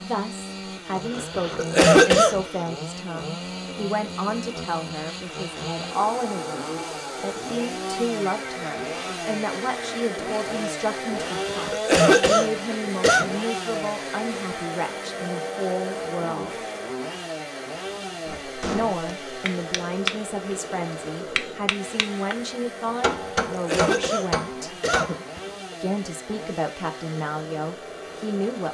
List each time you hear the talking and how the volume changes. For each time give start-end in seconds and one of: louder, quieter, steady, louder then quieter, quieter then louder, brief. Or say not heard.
0.0-16.5 steady
18.7-24.8 steady
25.8-28.6 brief.